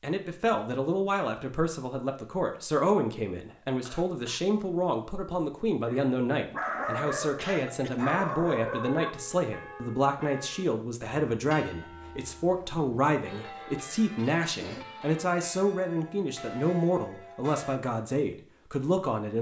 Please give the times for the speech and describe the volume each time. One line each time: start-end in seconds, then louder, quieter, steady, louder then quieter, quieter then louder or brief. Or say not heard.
0.0-19.3 steady.